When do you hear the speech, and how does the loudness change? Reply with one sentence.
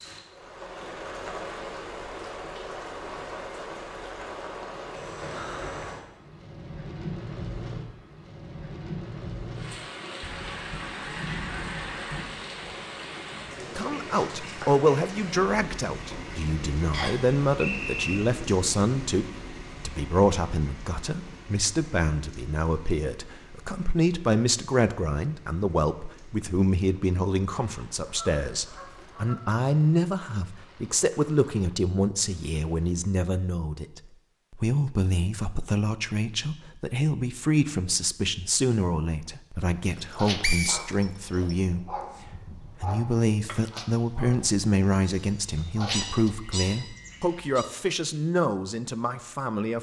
You can hear the speech from 13.8 to 49.7 s, at a steady volume.